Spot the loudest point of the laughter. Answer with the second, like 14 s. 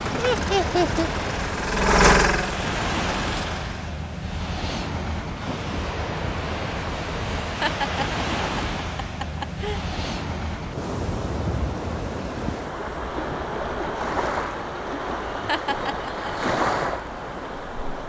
1 s.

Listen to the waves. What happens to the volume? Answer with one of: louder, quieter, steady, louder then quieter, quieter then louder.
steady.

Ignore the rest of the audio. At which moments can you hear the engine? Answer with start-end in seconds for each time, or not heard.
0.0-3.8.